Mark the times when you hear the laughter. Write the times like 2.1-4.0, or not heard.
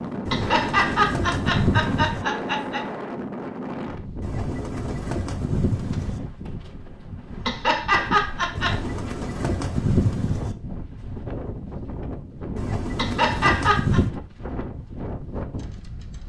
0.2-2.9, 7.4-8.8, 12.9-14.0.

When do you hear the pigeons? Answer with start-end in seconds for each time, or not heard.
0.2-2.2, 4.2-6.2, 8.6-10.6, 12.6-14.1.